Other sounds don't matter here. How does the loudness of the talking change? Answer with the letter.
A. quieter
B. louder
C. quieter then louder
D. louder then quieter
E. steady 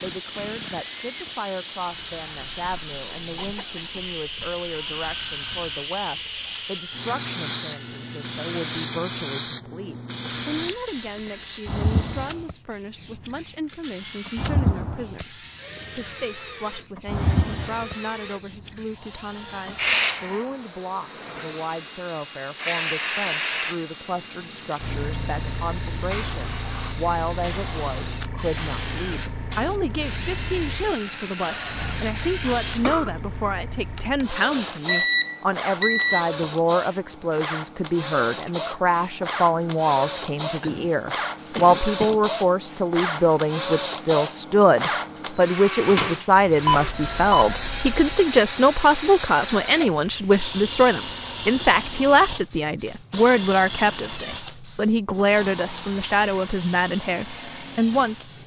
B.